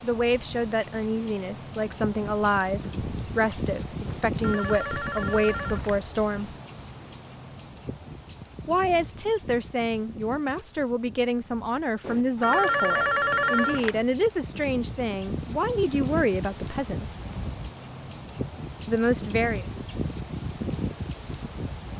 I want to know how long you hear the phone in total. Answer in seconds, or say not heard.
4 s.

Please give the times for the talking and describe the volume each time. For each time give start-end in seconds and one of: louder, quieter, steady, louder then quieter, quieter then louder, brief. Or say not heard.
0.0-6.5 steady
8.7-17.1 steady
18.9-19.6 brief.